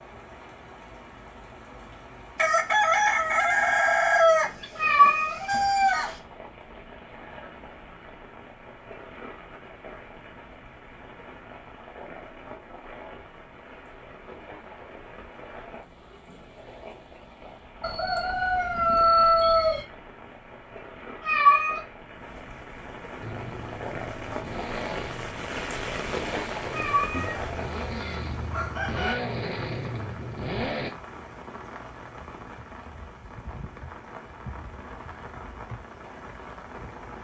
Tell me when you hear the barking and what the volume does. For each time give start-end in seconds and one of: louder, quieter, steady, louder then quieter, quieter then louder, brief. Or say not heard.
not heard.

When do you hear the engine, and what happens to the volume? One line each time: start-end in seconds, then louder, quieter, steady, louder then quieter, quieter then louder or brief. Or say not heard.
23.2-30.9 louder.